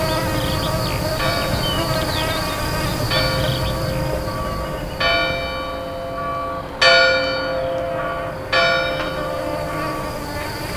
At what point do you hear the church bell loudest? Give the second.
7 s.